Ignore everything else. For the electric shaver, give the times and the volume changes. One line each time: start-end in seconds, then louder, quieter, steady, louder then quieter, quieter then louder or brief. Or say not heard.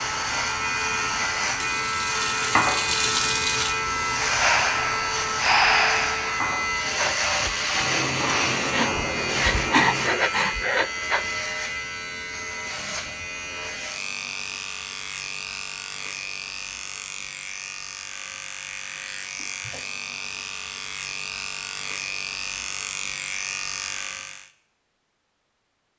0.0-24.5 quieter.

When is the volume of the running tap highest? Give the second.
3 s.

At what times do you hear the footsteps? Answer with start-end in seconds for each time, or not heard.
not heard.